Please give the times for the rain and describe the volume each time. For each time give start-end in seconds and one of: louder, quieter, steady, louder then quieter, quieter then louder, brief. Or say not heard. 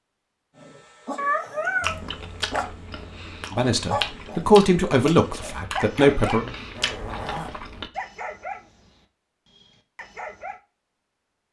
not heard.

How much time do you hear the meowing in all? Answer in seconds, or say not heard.
2 s.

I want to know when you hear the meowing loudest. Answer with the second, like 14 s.
2 s.